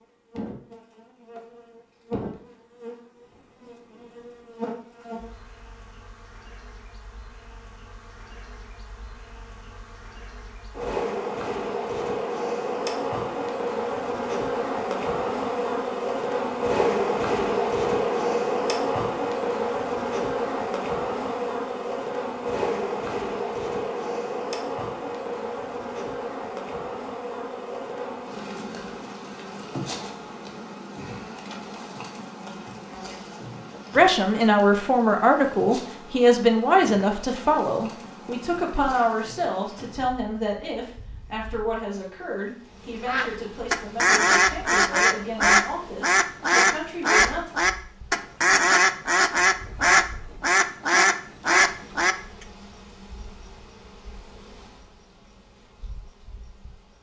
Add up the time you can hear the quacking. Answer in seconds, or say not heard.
9 s.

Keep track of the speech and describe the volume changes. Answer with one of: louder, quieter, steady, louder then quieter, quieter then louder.
quieter.